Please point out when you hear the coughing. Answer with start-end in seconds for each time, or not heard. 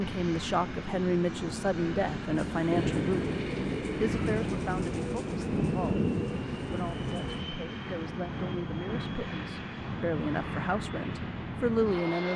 not heard.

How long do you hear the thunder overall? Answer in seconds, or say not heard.
4 s.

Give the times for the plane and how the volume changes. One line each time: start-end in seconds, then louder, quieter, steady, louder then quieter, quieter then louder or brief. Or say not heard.
0.0-12.3 steady.